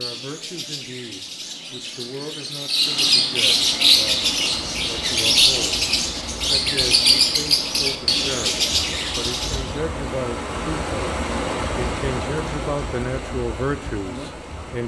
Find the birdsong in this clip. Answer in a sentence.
The birdsong can be heard from 0.0 to 9.8 s.